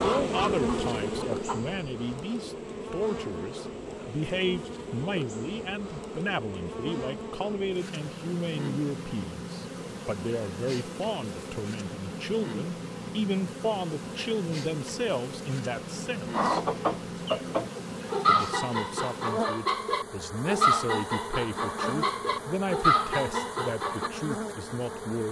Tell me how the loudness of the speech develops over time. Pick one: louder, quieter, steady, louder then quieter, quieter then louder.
steady.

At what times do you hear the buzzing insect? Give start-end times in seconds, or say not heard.
0.0-25.2.